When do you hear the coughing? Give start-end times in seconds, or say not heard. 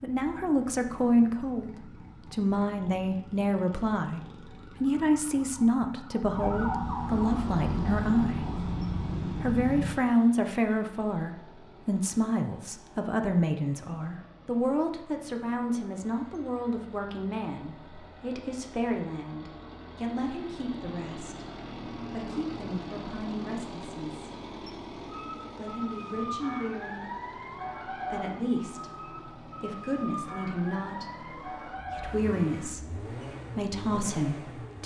not heard.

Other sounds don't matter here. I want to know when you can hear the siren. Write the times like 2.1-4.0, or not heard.
0.0-9.9, 25.1-32.8.